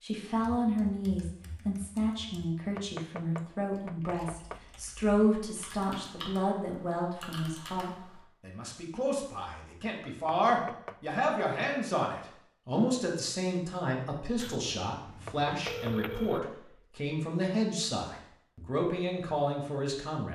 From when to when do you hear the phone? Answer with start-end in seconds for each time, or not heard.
14.3-16.4.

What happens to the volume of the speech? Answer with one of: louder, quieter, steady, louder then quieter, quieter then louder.
steady.